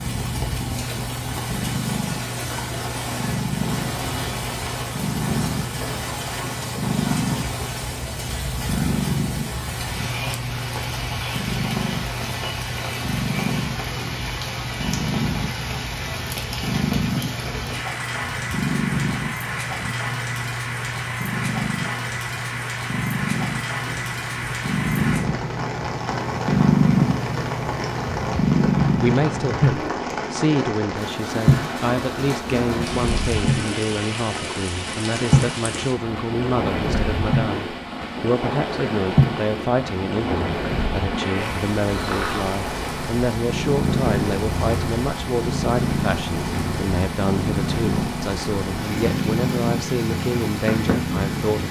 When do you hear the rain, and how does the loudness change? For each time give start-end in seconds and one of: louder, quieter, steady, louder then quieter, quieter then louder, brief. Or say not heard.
0.0-51.6 steady.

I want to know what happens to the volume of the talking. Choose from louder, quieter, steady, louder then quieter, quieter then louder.
steady.